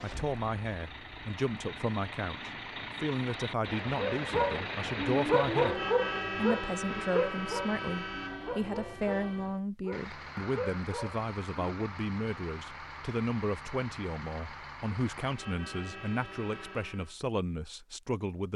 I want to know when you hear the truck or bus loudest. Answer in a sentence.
The loudest moment of the truck or bus is at 6 seconds.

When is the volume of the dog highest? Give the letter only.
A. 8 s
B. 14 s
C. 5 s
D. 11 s
C.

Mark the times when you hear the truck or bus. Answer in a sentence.
The truck or bus can be heard from 0.0 to 17.1 s.